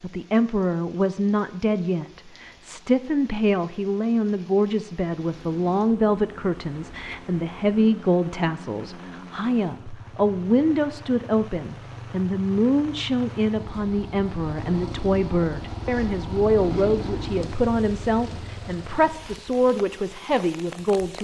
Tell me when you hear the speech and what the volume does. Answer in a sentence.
The speech can be heard from 0.0 to 21.1 s, at a steady volume.